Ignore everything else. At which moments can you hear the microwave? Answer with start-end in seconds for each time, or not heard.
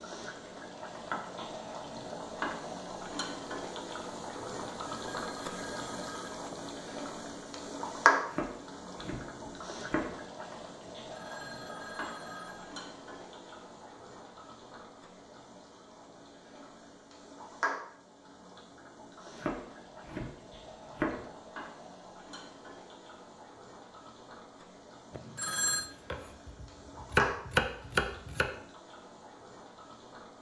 not heard.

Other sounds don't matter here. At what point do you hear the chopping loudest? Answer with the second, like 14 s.
27 s.